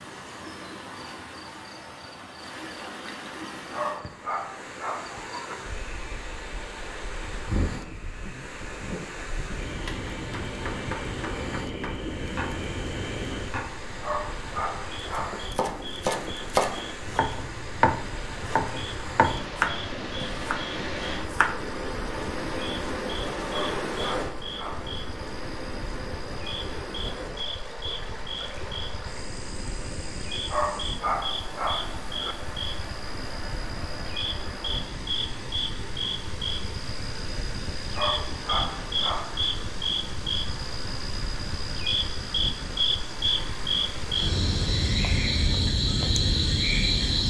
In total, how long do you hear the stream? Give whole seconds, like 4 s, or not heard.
47 s.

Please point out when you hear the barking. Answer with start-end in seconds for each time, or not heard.
3.7-5.5, 14.0-15.4, 23.5-24.9, 30.5-32.4, 38.0-39.5.